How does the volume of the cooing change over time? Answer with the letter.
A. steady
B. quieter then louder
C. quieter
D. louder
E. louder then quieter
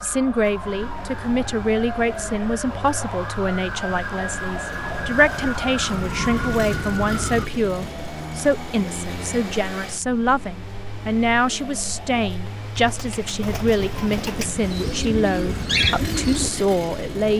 D.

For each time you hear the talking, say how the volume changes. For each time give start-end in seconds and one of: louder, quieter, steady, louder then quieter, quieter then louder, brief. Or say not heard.
0.0-17.3 steady.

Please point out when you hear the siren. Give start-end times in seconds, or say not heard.
0.0-7.5.